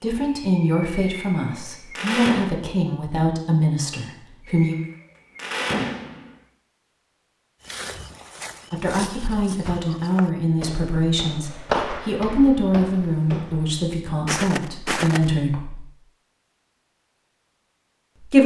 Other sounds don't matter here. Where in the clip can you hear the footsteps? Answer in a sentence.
The footsteps can be heard from 7.7 to 15.3 s.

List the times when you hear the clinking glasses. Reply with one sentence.
You can't hear the clinking glasses here.